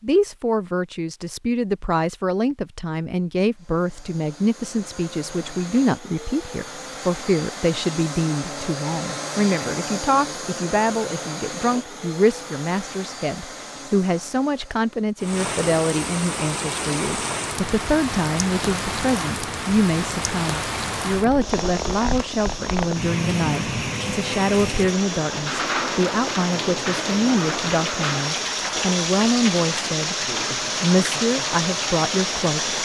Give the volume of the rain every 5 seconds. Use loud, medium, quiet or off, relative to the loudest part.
off, off, off, loud, loud, loud, loud.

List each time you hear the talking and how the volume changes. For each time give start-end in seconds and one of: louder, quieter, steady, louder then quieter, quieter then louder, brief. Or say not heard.
0.0-30.1 steady
30.8-32.8 brief.